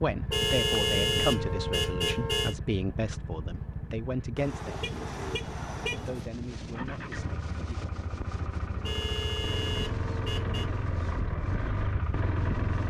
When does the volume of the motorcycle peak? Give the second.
12 s.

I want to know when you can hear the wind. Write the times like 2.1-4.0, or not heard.
4.7-12.8.